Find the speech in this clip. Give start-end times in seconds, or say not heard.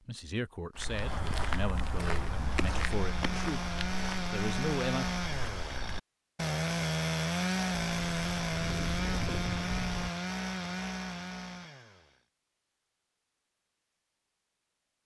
0.1-3.7, 4.3-5.0.